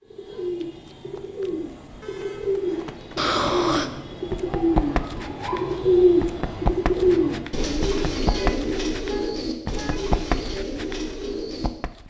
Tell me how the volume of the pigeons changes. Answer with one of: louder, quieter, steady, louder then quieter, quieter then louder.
louder then quieter.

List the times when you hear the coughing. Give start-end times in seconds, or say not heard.
3.1-3.9.